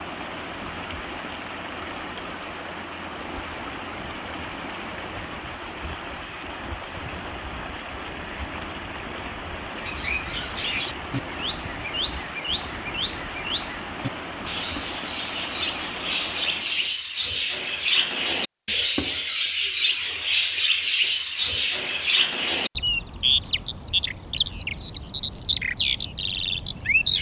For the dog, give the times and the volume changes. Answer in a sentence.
You can't hear the dog here.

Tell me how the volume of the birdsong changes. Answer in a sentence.
The loudness of the birdsong goes up.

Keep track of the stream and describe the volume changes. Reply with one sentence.
The loudness of the stream stays about the same.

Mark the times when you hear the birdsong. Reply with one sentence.
The birdsong can be heard from 9.7 to 27.1 s.